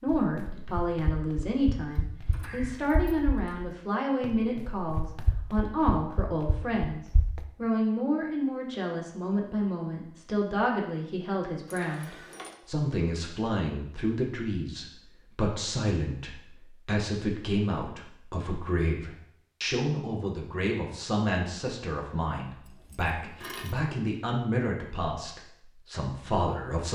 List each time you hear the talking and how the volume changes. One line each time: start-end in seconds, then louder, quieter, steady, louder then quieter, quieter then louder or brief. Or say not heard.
0.0-26.8 steady.